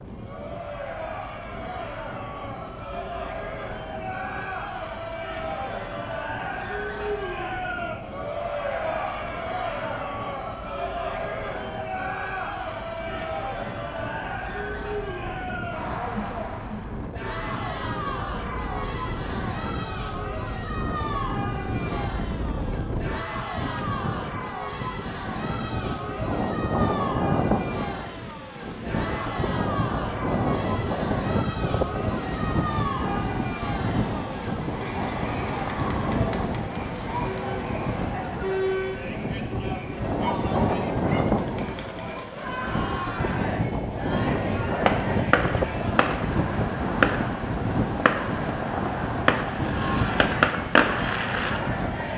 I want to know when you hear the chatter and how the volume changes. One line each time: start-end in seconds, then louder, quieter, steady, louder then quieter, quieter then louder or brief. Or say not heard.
0.1-52.1 steady.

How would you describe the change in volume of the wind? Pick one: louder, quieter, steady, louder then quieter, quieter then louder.
louder.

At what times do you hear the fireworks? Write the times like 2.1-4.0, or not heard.
44.6-51.6.